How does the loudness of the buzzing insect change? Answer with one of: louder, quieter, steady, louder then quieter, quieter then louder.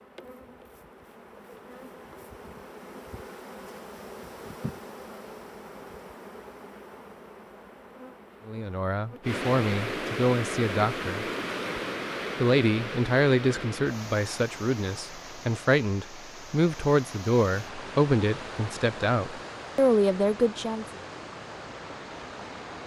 louder then quieter.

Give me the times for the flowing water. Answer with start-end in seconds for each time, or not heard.
9.2-22.8.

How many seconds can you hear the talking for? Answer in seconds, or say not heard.
11 s.